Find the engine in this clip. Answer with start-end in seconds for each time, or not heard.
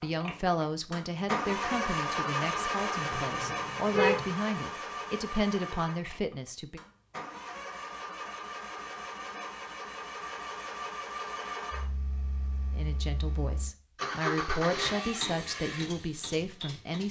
0.0-17.0.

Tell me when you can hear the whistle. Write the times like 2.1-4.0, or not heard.
not heard.